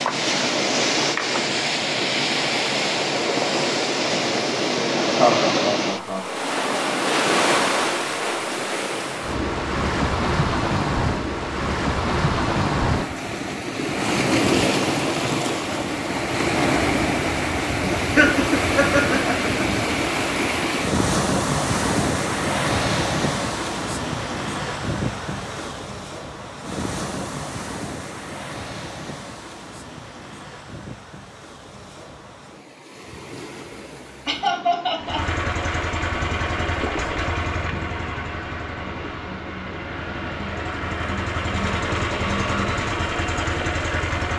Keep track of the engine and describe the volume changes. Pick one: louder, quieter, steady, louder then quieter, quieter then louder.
quieter then louder.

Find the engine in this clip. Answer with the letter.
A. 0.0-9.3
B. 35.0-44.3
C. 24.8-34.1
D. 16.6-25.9
B.